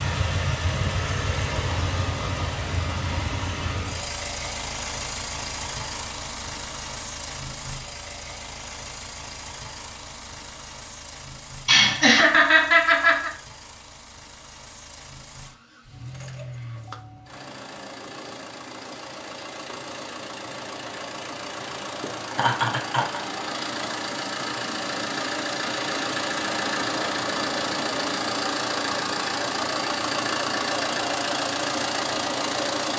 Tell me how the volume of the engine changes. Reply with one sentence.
The volume of the engine goes down, then up.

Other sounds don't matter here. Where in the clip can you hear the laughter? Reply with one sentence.
The laughter can be heard from 11.7 to 13.3 s and from 22.3 to 23.2 s.